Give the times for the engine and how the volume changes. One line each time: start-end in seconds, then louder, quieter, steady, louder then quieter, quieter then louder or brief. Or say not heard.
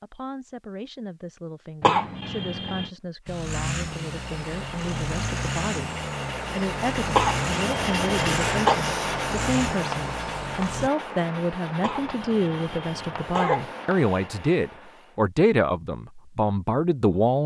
3.2-10.9 steady.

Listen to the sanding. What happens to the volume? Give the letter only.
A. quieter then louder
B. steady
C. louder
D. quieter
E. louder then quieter
E.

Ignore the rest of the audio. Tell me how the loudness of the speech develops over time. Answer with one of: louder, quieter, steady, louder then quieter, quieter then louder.
louder.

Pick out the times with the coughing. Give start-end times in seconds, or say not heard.
1.8-2.9, 7.1-8.8, 11.8-13.7.